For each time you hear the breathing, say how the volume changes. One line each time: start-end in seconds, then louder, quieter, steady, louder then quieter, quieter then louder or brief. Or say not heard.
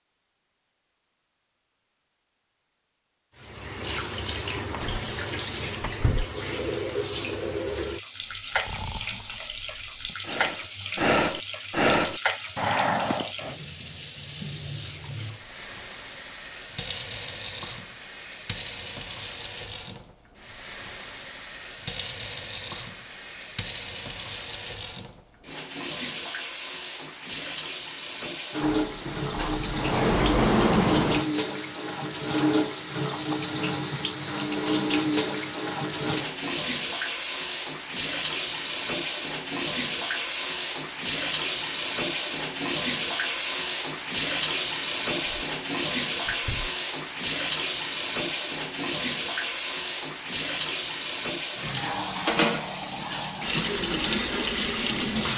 8.2-13.6 louder.